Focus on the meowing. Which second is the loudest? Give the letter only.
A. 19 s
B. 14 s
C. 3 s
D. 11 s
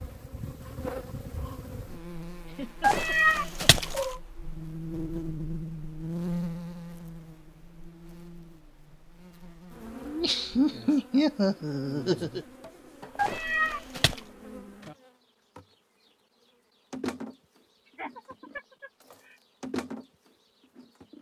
C.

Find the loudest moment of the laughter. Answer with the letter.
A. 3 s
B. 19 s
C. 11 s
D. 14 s
C.